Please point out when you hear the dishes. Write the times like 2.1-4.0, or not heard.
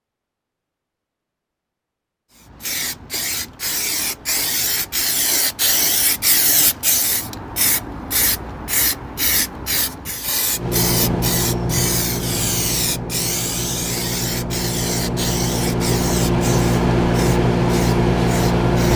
not heard.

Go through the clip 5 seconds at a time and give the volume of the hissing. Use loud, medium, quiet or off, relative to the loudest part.
loud, loud, loud, medium.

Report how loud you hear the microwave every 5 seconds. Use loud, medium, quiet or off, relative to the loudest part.
off, off, medium, loud.